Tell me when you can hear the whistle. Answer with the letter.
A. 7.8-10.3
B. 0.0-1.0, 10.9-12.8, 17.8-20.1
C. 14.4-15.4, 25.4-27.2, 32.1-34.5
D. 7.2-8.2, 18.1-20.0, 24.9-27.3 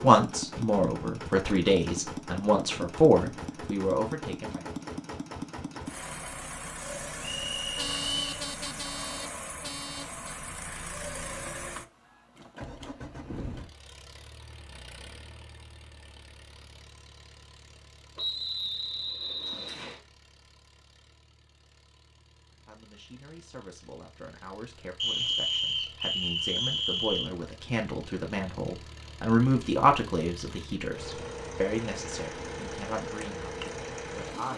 D.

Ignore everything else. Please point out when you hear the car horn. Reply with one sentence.
The car horn can be heard from 7.8 to 10.3 s.